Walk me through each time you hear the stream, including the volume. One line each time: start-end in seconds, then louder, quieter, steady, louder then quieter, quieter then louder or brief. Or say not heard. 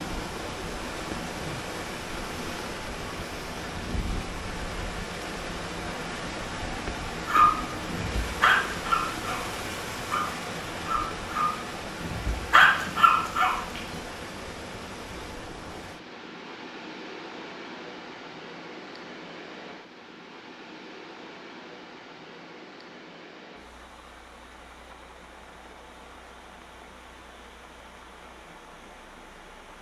0.0-29.7 quieter.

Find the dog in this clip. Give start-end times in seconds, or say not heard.
7.2-9.4, 10.1-13.8.